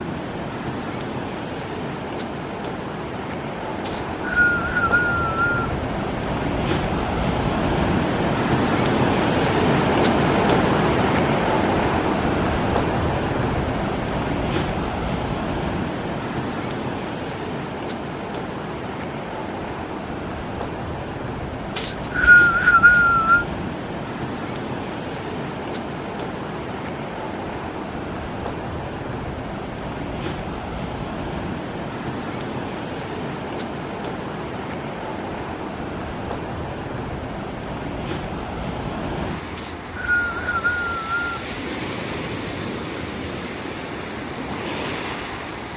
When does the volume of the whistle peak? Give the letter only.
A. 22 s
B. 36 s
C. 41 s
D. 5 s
A.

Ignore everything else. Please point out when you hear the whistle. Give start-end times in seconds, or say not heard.
3.9-5.8, 21.8-23.4, 39.5-41.3.